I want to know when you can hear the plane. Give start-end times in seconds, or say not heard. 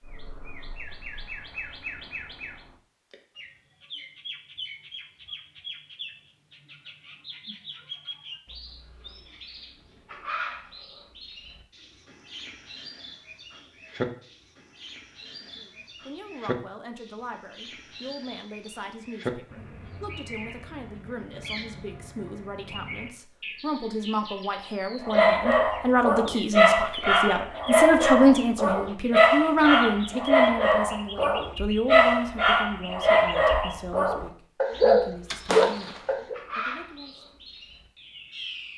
not heard.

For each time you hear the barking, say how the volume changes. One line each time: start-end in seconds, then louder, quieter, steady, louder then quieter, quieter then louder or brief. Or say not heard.
25.0-36.4 steady.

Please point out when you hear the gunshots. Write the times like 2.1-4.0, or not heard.
35.3-36.1.